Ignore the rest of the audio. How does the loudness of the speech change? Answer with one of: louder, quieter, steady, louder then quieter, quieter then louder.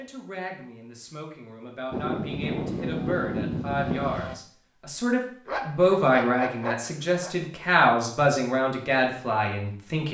louder.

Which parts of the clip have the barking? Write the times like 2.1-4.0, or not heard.
5.5-7.3.